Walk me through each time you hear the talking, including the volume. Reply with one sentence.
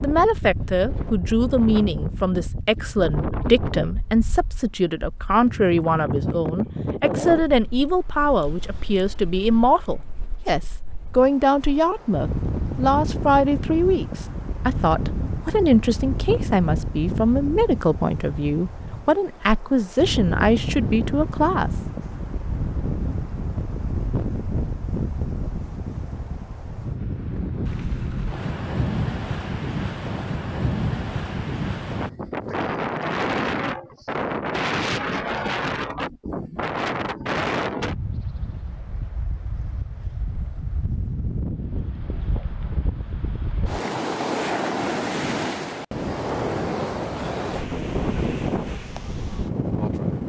You can hear the talking from 0.0 to 21.7 s, at a steady volume.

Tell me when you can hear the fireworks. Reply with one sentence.
You can't hear the fireworks here.